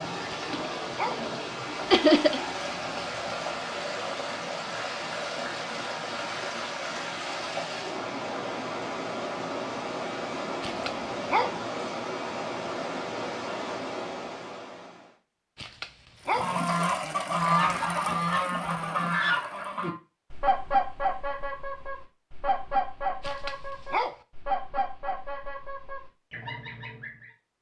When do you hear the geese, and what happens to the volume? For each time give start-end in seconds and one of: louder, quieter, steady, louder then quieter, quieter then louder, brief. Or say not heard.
16.3-27.3 quieter.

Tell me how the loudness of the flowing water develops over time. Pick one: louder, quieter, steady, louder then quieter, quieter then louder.
steady.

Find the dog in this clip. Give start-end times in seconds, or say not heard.
0.3-1.2, 10.6-11.6, 15.6-16.5, 23.2-24.1.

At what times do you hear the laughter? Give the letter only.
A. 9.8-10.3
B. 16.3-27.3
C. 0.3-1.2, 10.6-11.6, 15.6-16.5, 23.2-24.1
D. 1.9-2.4
D.